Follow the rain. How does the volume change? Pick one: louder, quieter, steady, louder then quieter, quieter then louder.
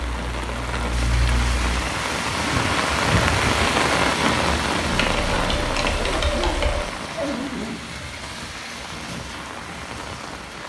louder then quieter.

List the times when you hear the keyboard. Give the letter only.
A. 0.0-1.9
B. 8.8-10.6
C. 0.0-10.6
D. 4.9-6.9
D.